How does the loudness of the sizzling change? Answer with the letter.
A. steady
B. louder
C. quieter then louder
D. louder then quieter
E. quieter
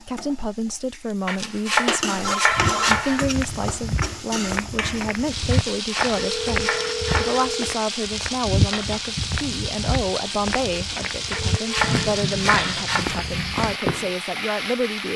A.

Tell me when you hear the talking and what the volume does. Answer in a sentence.
The talking can be heard from 0.0 to 15.1 s, at a steady volume.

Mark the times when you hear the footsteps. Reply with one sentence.
The footsteps can be heard from 2.5 to 14.1 s.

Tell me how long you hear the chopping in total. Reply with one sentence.
You can hear the chopping for 6 seconds altogether.